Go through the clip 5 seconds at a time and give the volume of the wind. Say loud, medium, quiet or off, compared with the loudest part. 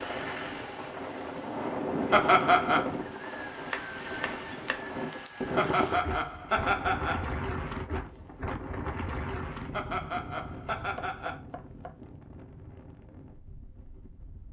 loud, loud, quiet.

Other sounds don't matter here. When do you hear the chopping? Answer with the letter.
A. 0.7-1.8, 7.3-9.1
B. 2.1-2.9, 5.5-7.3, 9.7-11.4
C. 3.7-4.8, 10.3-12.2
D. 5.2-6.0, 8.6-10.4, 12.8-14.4
C.